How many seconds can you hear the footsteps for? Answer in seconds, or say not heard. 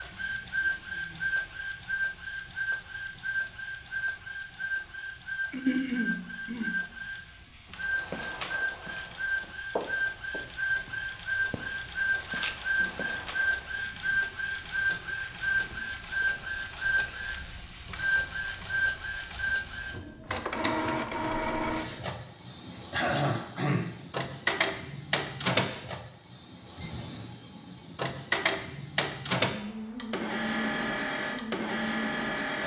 6 s.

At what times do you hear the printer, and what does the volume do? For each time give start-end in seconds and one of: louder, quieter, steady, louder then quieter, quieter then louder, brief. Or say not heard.
0.0-32.6 steady.